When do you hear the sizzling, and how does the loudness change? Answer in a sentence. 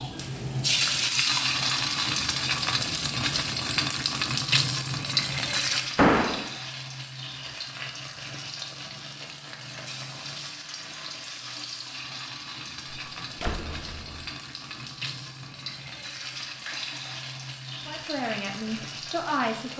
You can hear the sizzling from 0.0 to 19.7 s, getting quieter.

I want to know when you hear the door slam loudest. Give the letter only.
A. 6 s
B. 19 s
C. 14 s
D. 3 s
A.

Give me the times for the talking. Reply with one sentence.
The talking can be heard from 17.9 to 19.7 s.